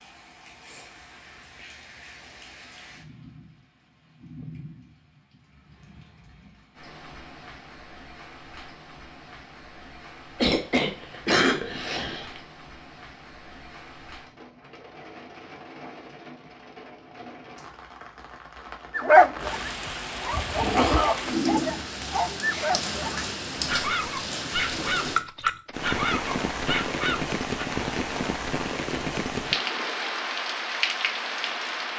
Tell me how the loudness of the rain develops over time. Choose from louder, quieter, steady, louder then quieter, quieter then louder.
louder.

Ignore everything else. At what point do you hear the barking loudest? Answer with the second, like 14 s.
19 s.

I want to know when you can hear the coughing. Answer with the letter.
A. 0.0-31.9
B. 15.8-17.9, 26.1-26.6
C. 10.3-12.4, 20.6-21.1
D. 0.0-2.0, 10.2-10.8
C.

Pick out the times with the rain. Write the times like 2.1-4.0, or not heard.
0.0-31.9.